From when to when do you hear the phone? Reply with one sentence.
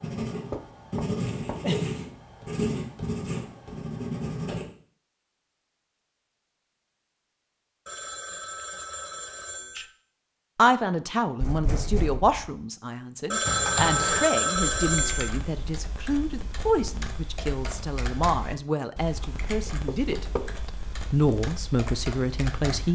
You can hear the phone from 7.8 to 9.8 s and from 13.3 to 15.3 s.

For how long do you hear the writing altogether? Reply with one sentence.
You can hear the writing for 5 seconds altogether.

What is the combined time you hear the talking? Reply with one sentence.
You can hear the talking for 12 seconds altogether.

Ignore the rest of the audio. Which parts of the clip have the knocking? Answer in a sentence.
You can hear the knocking from 0.5 to 1.9 s, from 11.4 to 12.5 s and from 19.2 to 20.5 s.